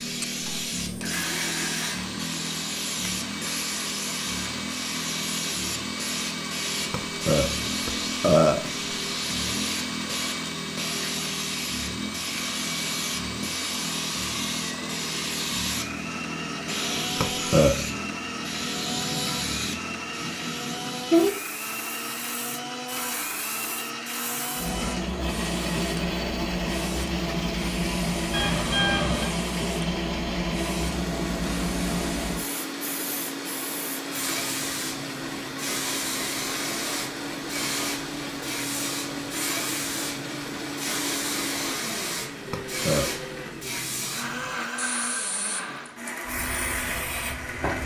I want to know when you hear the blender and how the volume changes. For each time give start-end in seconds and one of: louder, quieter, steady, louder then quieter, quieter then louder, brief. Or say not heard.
0.0-47.8 steady.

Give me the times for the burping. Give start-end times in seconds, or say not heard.
6.9-8.7, 17.2-17.8, 42.5-43.0.